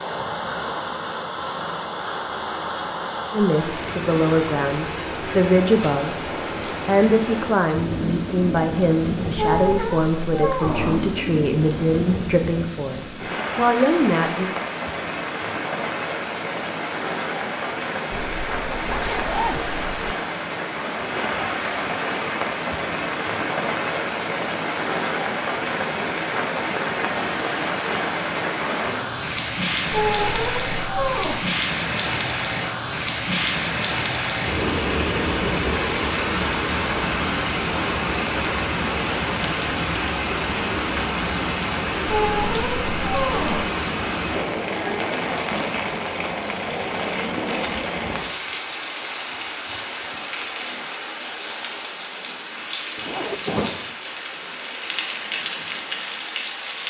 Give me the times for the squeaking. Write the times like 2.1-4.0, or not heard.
9.3-11.1, 29.9-31.4, 42.0-43.7.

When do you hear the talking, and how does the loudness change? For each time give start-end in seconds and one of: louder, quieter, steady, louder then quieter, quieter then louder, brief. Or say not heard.
3.3-6.2 brief
6.8-14.5 steady.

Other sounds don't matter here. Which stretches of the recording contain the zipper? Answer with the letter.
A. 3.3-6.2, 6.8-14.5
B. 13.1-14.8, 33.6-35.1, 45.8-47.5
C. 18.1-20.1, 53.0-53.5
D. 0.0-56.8
C.